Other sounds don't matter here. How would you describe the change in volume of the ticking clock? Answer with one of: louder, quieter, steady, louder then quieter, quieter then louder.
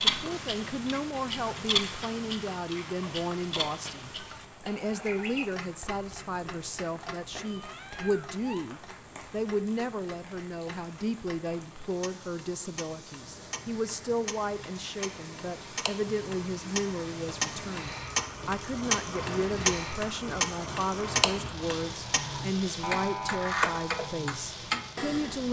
quieter then louder.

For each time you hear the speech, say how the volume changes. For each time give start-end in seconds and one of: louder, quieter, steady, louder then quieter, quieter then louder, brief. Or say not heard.
0.0-25.4 steady.